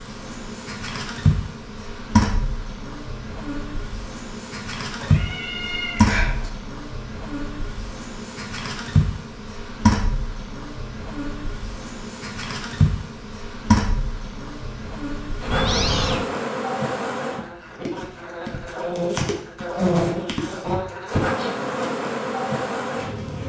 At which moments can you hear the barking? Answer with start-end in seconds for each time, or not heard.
not heard.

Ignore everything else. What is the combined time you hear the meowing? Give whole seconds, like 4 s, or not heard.
2 s.